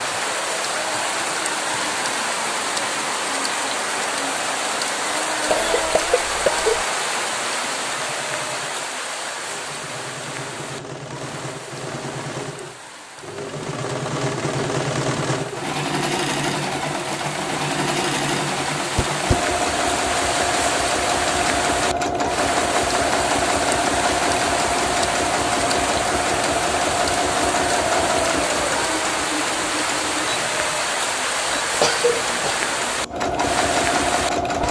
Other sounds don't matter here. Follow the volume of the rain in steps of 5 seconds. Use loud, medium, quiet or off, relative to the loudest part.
loud, loud, quiet, medium, loud, loud, loud.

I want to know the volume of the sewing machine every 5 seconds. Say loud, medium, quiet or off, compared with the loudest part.
quiet, quiet, medium, loud, loud, loud, loud.